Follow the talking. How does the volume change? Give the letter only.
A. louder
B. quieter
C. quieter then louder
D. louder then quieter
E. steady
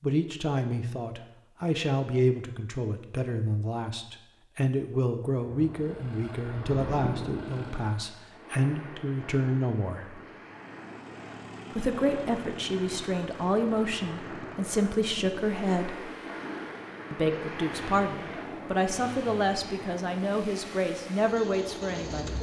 E.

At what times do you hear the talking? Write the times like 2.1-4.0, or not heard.
0.0-10.2, 11.7-16.1, 17.1-22.3.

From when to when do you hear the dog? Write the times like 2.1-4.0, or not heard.
not heard.